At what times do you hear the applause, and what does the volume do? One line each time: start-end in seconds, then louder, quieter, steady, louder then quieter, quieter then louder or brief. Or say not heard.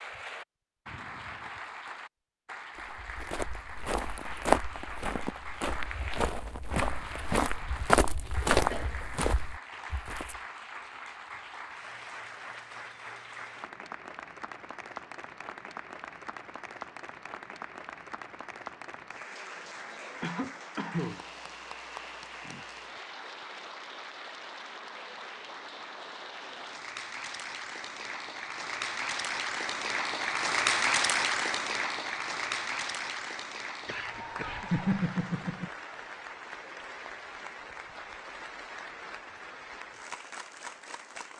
0.0-41.3 louder then quieter.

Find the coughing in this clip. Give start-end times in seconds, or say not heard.
7.6-9.2, 20.2-21.2, 33.9-35.7.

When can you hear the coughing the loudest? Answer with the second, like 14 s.
35 s.